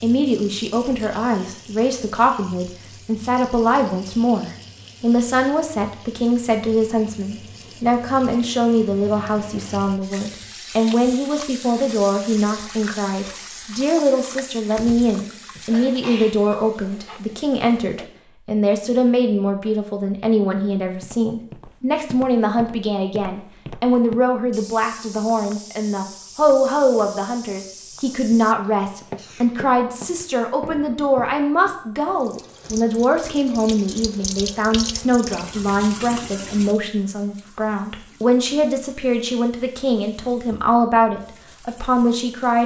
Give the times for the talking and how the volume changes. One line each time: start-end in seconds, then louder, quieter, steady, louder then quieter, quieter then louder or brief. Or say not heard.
0.0-42.6 steady.